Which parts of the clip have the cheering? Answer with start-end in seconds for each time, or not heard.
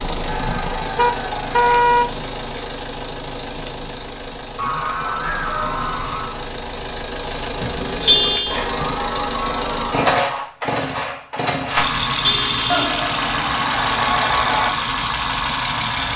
0.2-1.8, 4.5-6.5, 8.5-10.5, 12.7-14.7.